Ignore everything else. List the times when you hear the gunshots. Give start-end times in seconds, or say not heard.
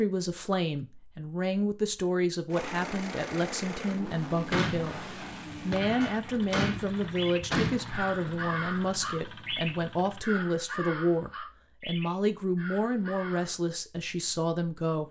4.5-8.1.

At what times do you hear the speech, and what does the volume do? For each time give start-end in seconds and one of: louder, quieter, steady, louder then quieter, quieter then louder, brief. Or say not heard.
0.0-15.0 steady.